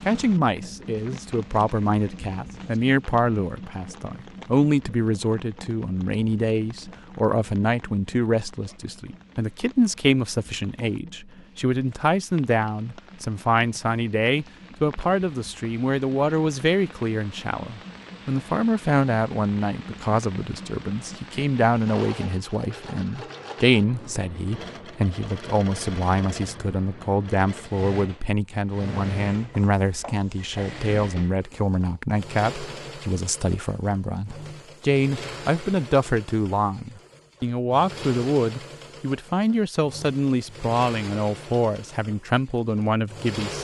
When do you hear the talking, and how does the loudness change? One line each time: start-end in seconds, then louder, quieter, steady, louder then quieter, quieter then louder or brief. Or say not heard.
0.0-43.5 steady.